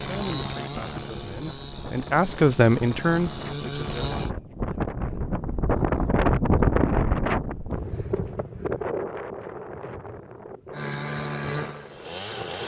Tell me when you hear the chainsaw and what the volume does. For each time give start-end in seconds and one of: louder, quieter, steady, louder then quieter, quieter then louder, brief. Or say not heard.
0.0-4.3 quieter then louder
10.7-12.6 brief.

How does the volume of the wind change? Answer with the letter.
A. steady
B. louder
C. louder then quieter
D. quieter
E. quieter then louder
C.